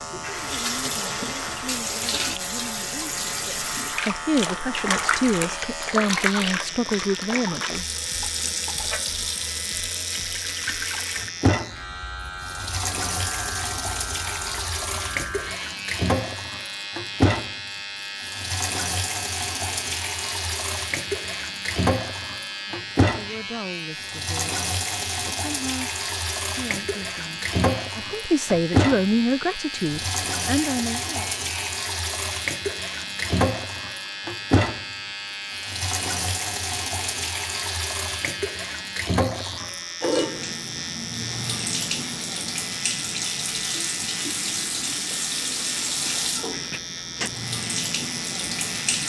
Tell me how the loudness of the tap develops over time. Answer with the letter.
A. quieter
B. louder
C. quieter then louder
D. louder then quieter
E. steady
E.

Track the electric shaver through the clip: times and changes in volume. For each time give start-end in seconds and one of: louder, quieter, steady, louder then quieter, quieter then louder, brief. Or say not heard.
0.0-49.0 steady.